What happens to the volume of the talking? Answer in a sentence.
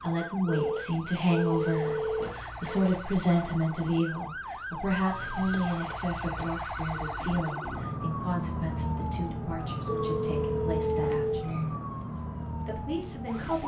The loudness of the talking goes down.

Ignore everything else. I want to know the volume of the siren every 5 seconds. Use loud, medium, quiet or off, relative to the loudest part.
medium, loud, loud.